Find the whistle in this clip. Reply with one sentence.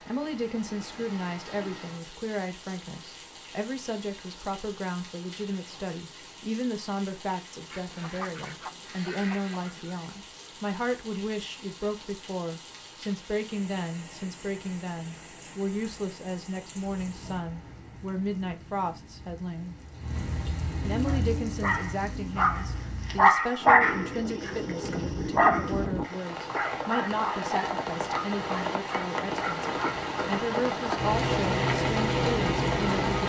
The whistle can't be heard in this clip.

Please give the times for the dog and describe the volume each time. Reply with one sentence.
The dog can be heard from 21.1 to 30.1 s, getting louder then quieter.